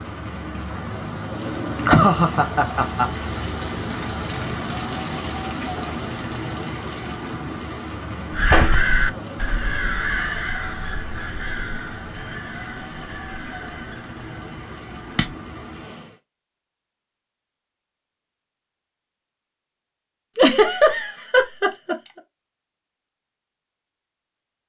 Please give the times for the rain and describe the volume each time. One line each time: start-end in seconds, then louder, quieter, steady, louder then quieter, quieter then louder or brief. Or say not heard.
0.0-16.2 quieter.